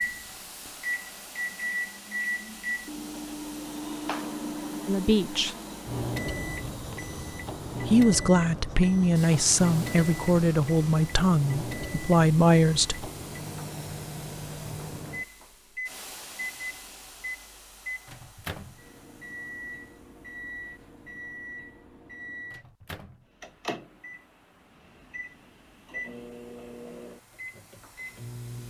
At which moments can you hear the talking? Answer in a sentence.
The talking can be heard from 4.8 to 5.5 s and from 7.8 to 13.1 s.